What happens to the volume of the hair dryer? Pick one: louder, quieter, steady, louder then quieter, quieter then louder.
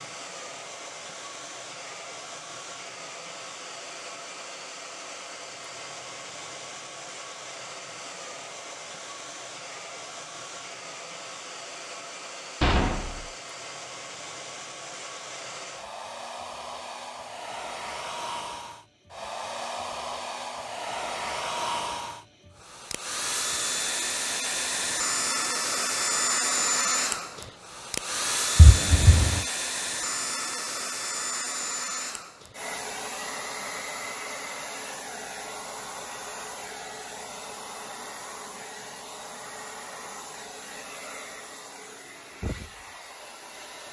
louder then quieter.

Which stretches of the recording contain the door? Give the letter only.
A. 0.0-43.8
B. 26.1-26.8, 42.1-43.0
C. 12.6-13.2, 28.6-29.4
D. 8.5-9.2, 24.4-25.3
C.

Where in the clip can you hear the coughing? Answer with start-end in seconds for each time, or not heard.
not heard.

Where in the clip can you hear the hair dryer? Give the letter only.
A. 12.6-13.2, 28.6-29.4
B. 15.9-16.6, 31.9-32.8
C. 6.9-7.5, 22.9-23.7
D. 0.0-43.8
D.